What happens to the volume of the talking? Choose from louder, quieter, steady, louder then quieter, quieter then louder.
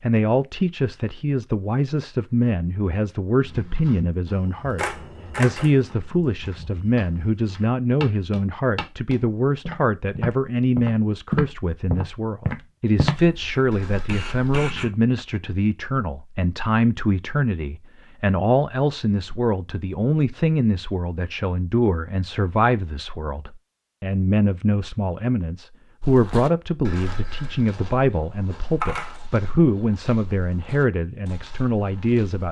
steady.